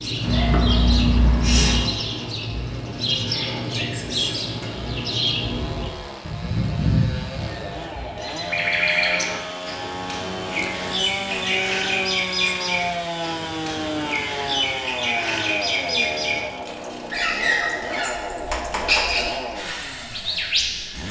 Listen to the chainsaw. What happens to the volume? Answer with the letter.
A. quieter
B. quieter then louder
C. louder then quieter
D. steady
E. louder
E.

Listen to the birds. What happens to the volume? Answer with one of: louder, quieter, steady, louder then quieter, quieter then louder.
steady.